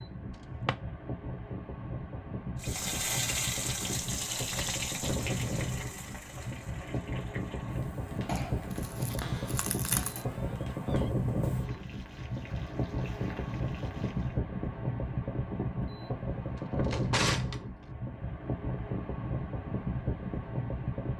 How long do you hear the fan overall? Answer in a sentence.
The fan can be heard for 21 seconds in total.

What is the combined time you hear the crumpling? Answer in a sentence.
You can hear the crumpling for 2 seconds altogether.